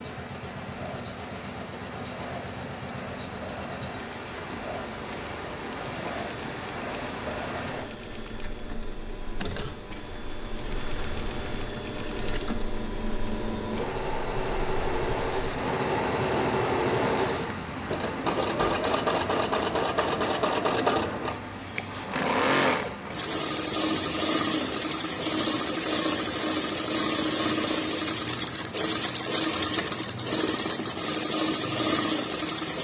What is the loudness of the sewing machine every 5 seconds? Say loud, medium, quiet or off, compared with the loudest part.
quiet, quiet, medium, loud, loud, loud, loud.